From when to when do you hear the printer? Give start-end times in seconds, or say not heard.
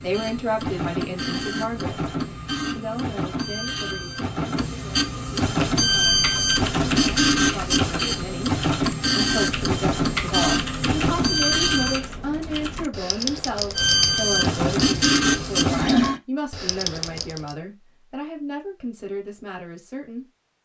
0.0-12.1, 13.8-16.2.